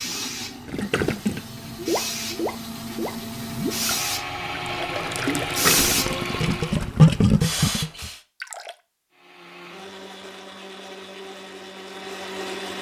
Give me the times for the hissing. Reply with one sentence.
The hissing can be heard from 0.0 to 8.2 s.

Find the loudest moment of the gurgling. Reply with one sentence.
The volume of the gurgling peaks at 7 seconds.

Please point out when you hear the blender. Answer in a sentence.
You can hear the blender from 0.0 to 7.0 s and from 9.1 to 12.7 s.